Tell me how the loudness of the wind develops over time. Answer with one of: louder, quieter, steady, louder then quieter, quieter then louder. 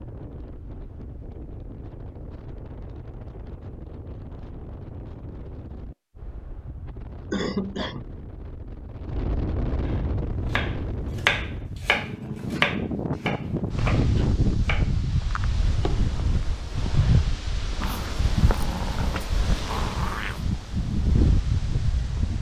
louder.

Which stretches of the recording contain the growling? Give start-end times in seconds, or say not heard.
17.8-20.4.